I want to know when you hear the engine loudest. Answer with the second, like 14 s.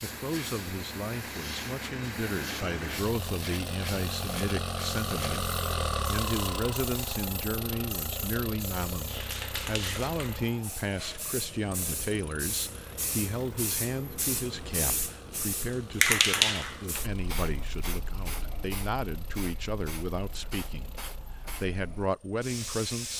6 s.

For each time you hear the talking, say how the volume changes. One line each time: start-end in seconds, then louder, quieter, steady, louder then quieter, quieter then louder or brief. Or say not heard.
0.0-23.1 steady.